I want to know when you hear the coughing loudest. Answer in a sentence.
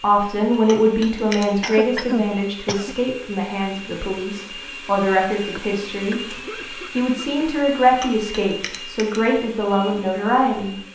The loudest moment of the coughing is at 2 seconds.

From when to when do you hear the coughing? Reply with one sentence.
You can hear the coughing from 1.6 to 3.0 s and from 5.5 to 7.5 s.